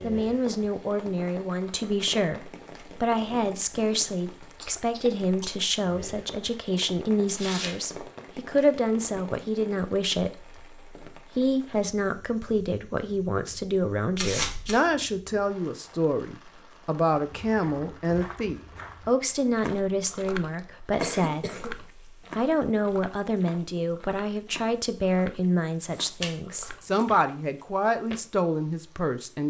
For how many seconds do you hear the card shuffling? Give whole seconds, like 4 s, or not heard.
2 s.